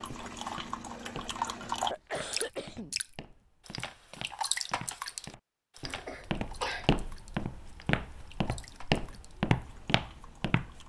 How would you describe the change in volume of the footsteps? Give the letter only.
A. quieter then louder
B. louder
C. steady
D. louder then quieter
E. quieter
B.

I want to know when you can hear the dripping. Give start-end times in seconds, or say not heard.
0.0-3.0, 3.6-10.8.